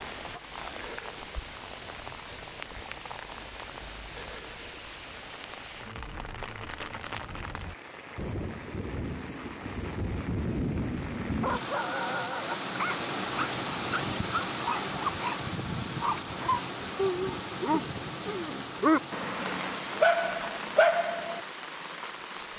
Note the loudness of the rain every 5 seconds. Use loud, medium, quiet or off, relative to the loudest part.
medium, medium, loud, loud, medium.